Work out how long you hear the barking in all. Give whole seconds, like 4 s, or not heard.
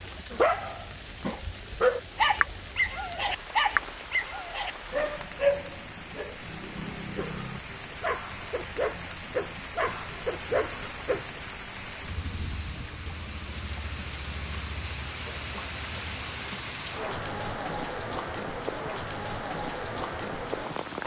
11 s.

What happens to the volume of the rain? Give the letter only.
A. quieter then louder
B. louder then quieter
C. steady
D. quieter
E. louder
E.